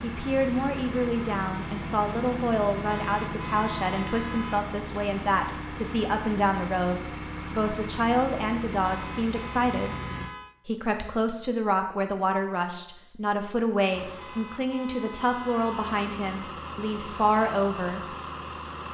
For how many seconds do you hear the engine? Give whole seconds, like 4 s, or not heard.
15 s.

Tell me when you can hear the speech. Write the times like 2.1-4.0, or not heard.
0.0-9.9, 10.7-18.1.